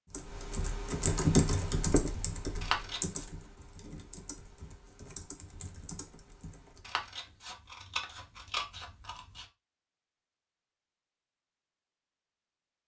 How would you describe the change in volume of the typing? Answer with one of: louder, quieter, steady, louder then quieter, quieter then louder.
quieter.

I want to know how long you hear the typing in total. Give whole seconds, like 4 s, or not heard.
7 s.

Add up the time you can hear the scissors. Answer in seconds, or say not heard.
3 s.